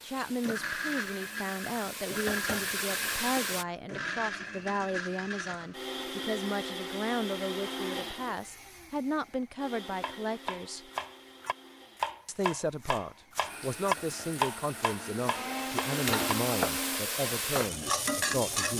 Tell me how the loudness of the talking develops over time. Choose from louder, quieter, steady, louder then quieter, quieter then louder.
steady.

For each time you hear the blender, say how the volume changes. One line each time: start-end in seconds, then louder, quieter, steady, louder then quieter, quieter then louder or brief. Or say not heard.
0.4-17.1 quieter then louder.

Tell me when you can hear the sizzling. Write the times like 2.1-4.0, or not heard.
0.0-3.6, 13.8-18.7.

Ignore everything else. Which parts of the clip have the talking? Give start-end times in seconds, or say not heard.
0.0-10.8, 12.2-18.7.